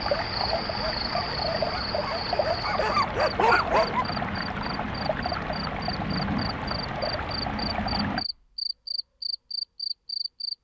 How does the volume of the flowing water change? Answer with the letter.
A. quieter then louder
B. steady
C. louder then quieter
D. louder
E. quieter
B.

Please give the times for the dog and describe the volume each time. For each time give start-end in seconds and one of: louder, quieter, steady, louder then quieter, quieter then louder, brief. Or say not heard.
0.0-4.0 louder.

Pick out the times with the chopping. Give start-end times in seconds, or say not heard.
not heard.